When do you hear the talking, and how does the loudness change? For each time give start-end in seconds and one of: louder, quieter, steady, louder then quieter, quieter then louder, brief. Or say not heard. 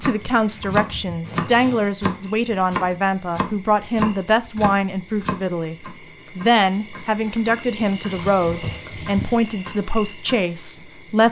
0.0-11.2 steady.